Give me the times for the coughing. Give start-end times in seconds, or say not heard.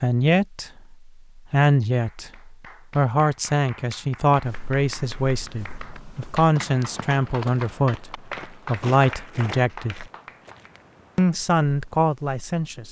not heard.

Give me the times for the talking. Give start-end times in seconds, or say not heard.
0.0-10.1, 11.2-12.8.